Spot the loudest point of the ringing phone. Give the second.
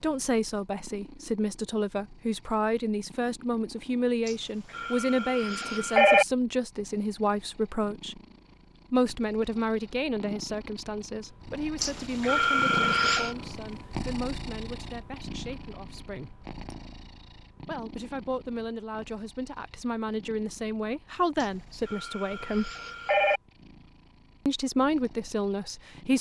6 s.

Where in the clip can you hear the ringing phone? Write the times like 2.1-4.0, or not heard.
4.2-6.2, 11.8-13.3, 21.4-23.4.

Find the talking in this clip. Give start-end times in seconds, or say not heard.
0.0-8.2, 8.9-16.4, 17.6-22.7, 24.4-26.1.